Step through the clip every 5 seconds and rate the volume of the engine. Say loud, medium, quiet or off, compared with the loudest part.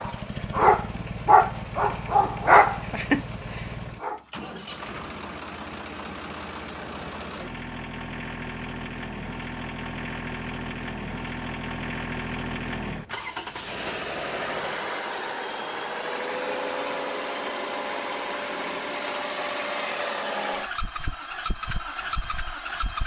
medium, medium, loud, loud, loud.